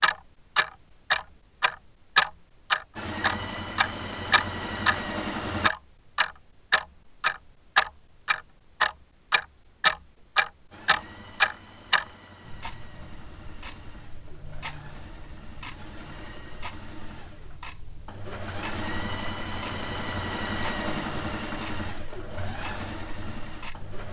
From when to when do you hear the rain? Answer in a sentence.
The rain can't be heard in this clip.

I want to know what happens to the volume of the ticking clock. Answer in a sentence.
The volume of the ticking clock goes down.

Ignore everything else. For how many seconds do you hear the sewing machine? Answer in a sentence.
The sewing machine can be heard for 16 seconds in total.